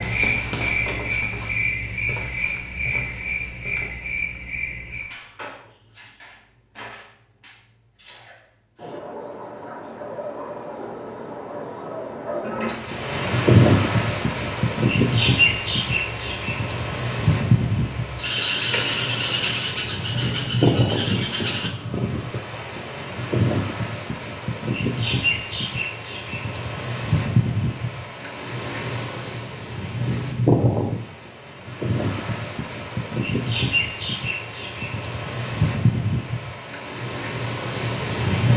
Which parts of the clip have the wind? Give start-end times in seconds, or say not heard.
12.8-38.5.